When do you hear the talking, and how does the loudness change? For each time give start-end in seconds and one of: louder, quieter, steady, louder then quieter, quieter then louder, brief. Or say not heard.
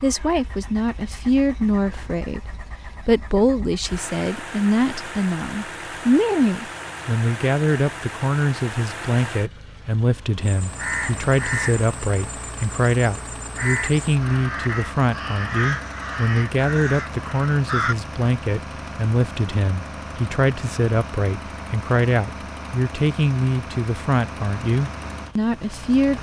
0.0-26.1 steady.